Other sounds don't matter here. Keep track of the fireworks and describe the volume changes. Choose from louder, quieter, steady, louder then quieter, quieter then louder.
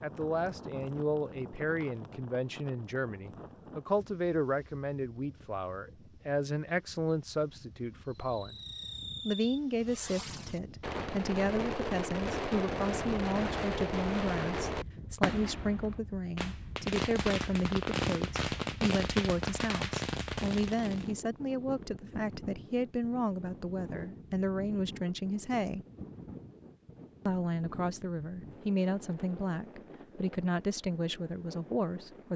louder.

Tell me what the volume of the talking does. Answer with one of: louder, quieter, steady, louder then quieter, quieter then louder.
steady.